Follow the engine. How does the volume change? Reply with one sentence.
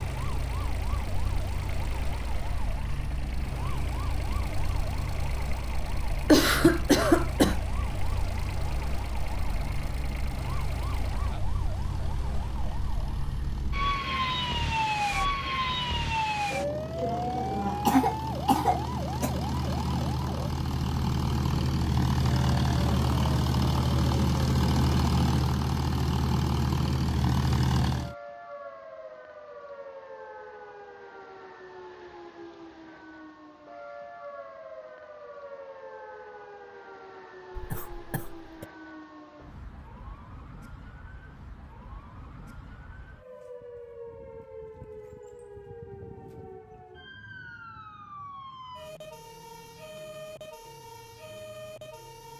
The loudness of the engine goes up.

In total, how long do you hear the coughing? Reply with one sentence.
The coughing can be heard for 4 seconds in total.